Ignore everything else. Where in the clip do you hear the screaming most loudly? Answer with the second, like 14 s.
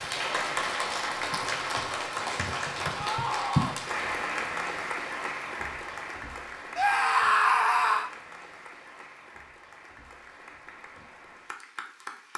7 s.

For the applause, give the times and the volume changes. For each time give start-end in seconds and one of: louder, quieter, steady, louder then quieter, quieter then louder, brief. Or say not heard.
0.0-12.3 quieter.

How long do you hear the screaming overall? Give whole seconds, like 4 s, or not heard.
2 s.